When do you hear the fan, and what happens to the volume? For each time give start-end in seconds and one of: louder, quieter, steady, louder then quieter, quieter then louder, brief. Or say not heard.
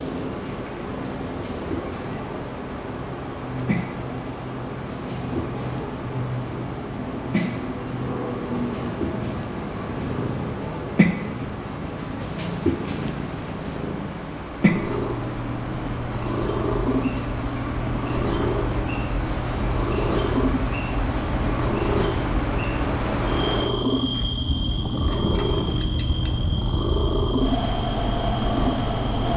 0.0-29.3 louder.